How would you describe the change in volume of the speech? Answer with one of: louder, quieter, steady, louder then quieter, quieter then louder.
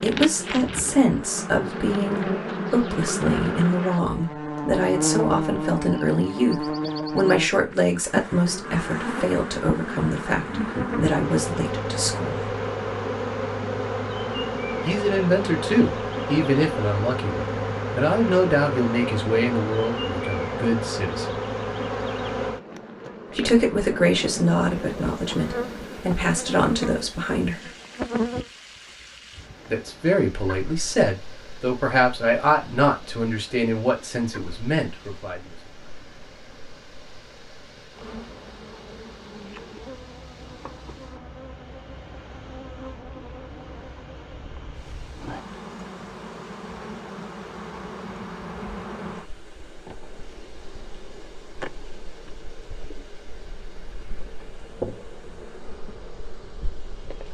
steady.